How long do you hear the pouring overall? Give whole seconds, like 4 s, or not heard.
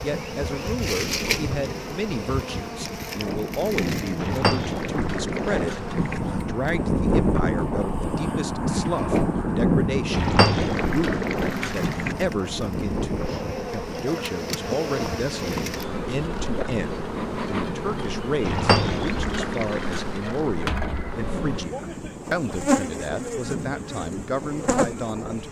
6 s.